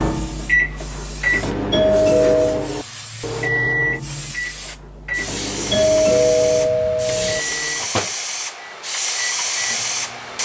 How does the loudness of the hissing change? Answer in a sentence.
The volume of the hissing goes up.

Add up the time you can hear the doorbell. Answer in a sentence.
You can hear the doorbell for 3 seconds altogether.